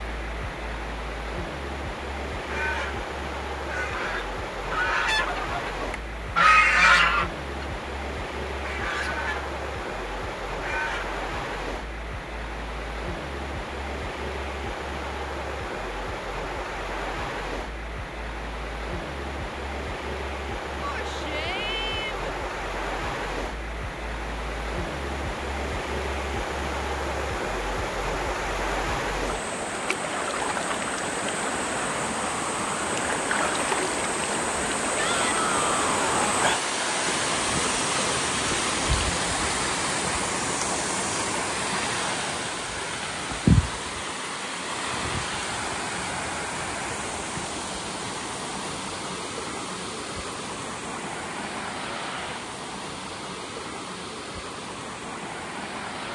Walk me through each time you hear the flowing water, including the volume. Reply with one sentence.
The flowing water can be heard from 0.0 to 56.0 s, getting louder then quieter.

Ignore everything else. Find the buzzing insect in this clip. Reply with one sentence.
You can't hear the buzzing insect here.